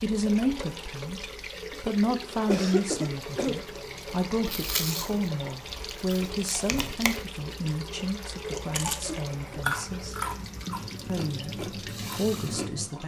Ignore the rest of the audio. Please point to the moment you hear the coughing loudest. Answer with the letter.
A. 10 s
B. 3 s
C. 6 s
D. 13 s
B.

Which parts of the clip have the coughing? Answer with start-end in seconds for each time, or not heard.
1.7-3.5, 8.9-9.6.